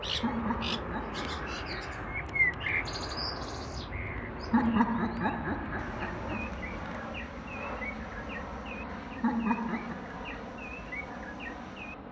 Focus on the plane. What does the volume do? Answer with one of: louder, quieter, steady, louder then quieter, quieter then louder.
steady.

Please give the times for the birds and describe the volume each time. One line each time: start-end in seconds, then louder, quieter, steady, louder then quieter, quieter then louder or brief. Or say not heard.
0.0-11.9 quieter.